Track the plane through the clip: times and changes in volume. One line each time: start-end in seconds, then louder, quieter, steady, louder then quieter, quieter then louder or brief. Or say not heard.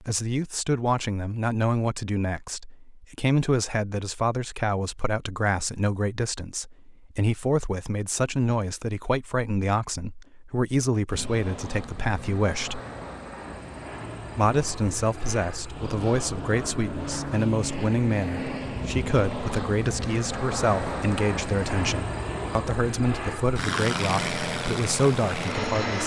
11.1-26.0 louder.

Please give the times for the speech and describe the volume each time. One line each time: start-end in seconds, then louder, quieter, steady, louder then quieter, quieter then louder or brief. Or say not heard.
0.0-12.8 steady
14.3-26.0 steady.